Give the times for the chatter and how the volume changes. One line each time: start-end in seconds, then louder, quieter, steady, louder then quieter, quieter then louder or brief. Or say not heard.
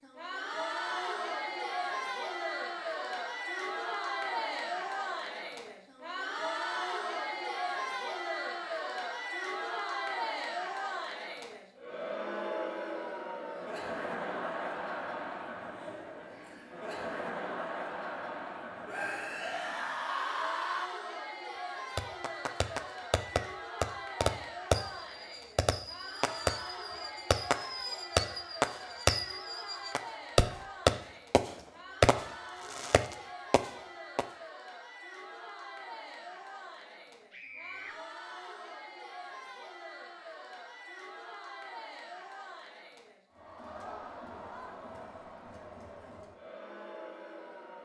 0.0-47.7 quieter.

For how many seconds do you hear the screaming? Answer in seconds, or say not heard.
3 s.